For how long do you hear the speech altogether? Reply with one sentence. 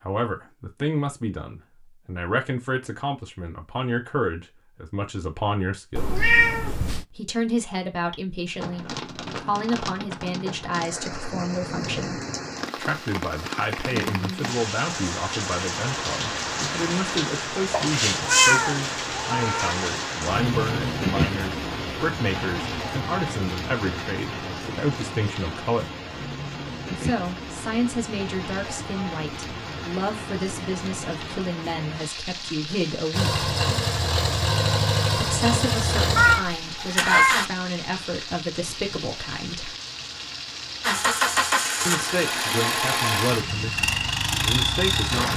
You can hear the speech for 39 seconds altogether.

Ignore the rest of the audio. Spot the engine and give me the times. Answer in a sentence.
You can hear the engine from 33.1 to 37.5 s and from 40.8 to 45.3 s.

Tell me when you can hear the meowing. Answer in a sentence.
You can hear the meowing from 6.0 to 7.0 s, from 17.7 to 19.8 s and from 36.1 to 37.4 s.